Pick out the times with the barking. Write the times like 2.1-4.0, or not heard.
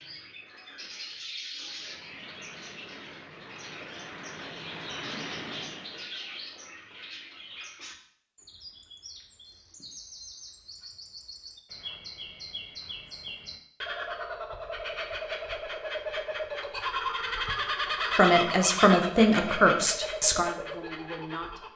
not heard.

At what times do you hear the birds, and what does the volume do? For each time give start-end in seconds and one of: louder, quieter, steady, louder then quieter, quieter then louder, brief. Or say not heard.
0.0-21.7 louder.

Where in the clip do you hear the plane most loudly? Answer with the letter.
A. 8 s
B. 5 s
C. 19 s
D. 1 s
B.